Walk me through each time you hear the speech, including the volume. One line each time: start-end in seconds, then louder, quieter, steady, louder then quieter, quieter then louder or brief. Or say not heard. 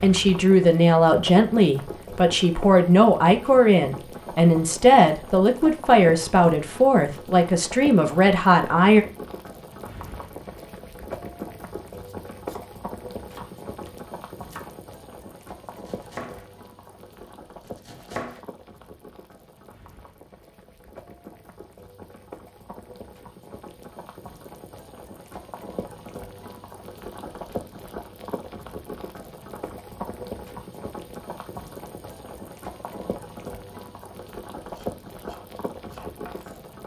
0.0-9.1 steady.